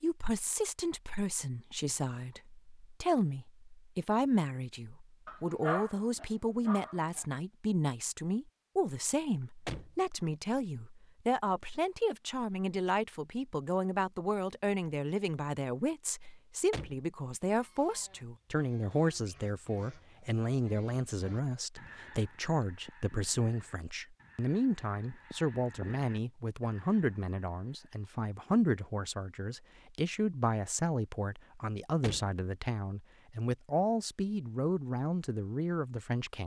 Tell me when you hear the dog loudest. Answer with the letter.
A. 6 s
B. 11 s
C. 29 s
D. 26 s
A.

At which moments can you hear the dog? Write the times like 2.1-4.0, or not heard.
5.2-7.2.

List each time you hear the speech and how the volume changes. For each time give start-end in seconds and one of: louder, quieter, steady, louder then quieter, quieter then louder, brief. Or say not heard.
0.0-36.4 steady.